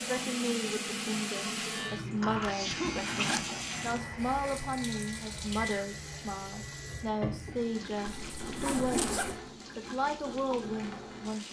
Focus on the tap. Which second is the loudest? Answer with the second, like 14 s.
1 s.